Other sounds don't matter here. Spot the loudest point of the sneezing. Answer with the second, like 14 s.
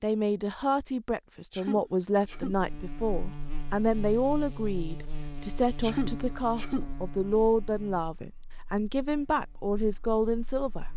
6 s.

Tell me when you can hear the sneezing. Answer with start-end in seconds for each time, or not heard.
1.5-2.6, 5.8-6.9.